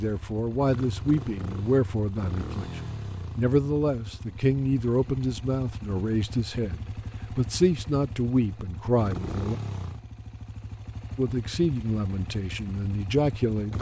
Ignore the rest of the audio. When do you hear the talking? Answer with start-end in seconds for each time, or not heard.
0.0-9.6, 11.2-13.7.